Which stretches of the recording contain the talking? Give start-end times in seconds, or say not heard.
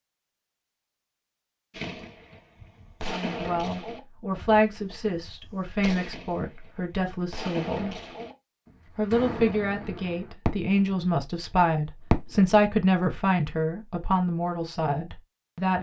3.0-8.0, 8.9-15.7.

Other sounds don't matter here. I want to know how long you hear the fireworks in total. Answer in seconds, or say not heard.
10 s.